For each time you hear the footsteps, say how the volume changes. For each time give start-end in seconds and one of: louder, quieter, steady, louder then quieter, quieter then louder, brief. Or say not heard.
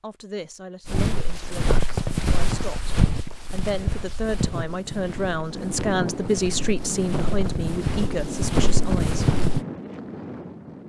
0.8-9.6 quieter then louder.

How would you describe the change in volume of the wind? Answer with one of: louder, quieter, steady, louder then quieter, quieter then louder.
steady.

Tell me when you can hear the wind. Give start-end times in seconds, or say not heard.
4.6-10.8.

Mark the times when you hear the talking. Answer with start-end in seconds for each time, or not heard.
0.0-9.4.